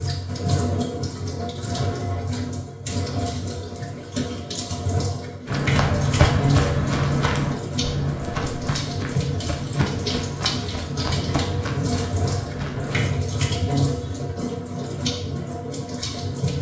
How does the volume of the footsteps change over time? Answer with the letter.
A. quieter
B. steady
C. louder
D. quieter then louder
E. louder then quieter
A.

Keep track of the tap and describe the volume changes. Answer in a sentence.
The volume of the tap stays about the same.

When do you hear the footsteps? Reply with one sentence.
You can hear the footsteps from 5.5 to 13.2 s.